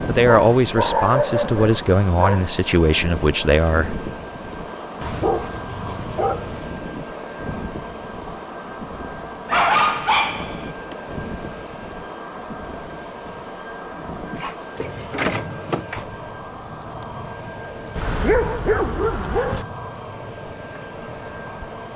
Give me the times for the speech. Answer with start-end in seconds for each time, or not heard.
0.1-4.0.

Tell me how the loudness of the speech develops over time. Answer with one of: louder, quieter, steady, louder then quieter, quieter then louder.
steady.